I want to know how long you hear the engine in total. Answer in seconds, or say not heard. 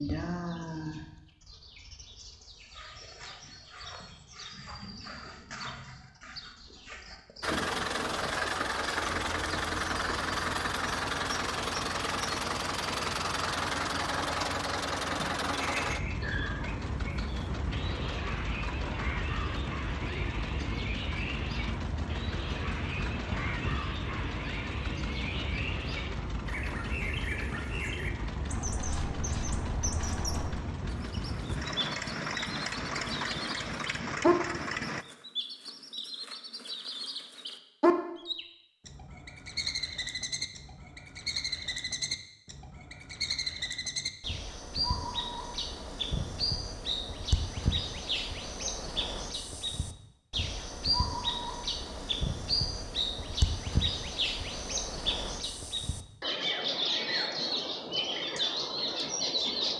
28 s.